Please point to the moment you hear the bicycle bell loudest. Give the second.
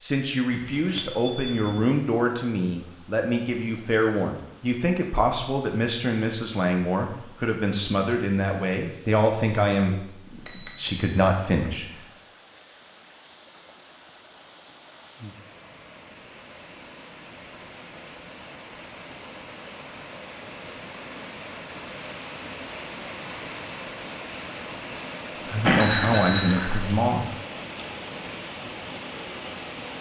26 s.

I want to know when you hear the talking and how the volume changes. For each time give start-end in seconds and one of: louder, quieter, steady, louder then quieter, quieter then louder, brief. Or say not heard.
0.0-12.0 steady
25.4-27.4 brief.